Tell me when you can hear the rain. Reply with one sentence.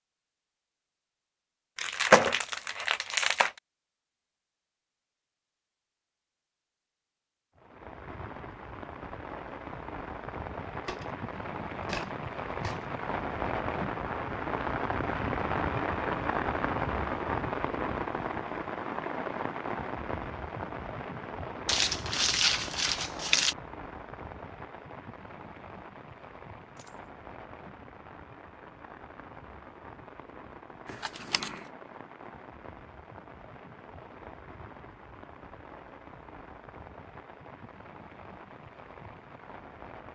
The rain can be heard from 7.5 to 40.1 s.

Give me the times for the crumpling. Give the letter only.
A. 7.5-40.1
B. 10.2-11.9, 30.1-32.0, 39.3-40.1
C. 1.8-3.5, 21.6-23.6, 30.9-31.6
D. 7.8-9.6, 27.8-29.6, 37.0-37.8
C.